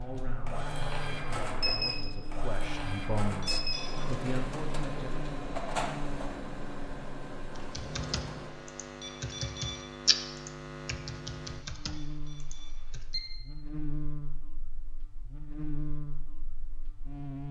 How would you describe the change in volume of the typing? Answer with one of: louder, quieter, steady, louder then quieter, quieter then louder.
louder then quieter.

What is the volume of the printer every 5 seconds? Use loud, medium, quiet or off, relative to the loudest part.
loud, loud, off, off.